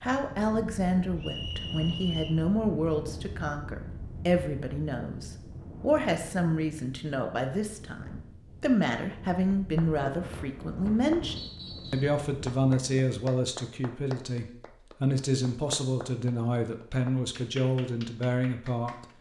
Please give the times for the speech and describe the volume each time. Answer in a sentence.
You can hear the speech from 0.0 to 19.1 s, at a steady volume.